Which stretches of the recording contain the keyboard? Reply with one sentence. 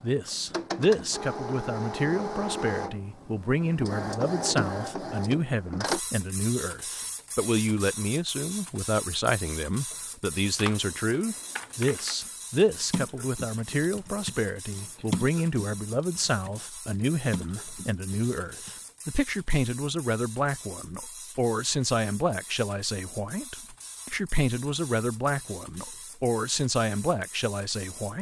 You can hear the keyboard from 10.6 to 18.7 s.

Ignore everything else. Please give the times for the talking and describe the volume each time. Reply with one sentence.
The talking can be heard from 0.0 to 28.1 s, at a steady volume.